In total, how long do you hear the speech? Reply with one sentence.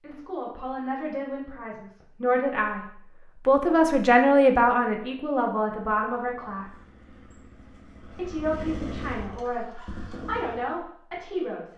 The speech can be heard for 10 seconds in total.